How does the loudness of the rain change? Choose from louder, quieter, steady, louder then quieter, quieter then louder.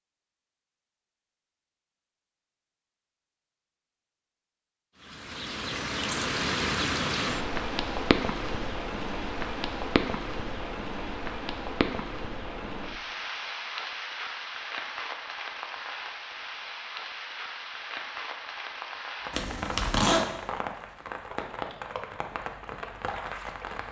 quieter.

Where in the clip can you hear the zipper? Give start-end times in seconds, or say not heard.
19.3-20.2.